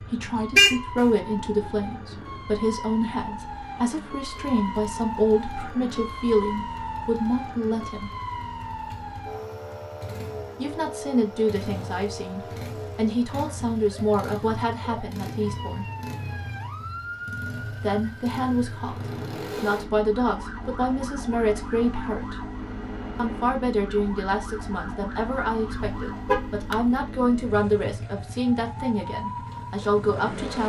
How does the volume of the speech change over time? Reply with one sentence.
The loudness of the speech stays about the same.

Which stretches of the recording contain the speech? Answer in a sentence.
The speech can be heard from 0.1 to 8.1 s, from 10.6 to 15.8 s, from 17.8 to 22.4 s and from 23.1 to 30.6 s.